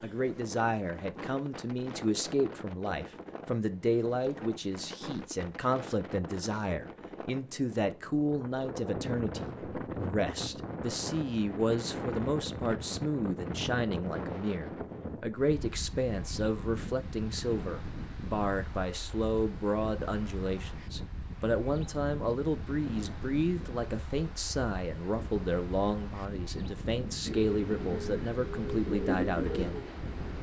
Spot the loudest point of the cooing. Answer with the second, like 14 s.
29 s.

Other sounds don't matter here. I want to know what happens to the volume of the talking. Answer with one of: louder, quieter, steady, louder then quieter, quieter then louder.
steady.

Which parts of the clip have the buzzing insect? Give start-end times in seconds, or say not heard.
not heard.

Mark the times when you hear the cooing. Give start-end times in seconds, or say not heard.
27.2-30.3.